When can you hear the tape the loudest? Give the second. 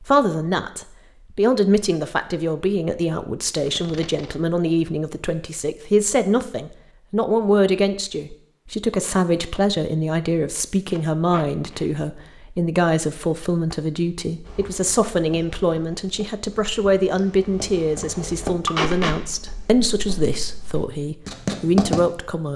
19 s.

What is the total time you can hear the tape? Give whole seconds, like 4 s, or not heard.
2 s.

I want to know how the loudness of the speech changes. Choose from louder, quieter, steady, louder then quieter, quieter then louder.
steady.